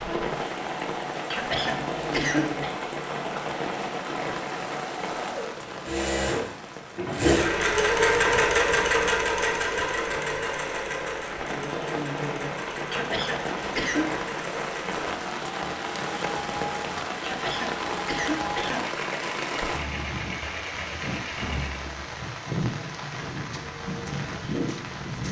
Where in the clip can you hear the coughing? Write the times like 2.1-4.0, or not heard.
1.3-2.8, 12.9-14.2, 17.2-18.9.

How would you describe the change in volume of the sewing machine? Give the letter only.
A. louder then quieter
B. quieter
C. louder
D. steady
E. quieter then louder
A.